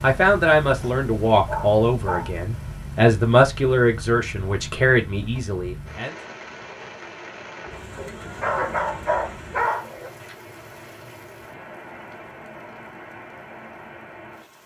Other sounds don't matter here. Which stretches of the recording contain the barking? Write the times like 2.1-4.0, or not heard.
0.8-2.3, 8.0-10.1.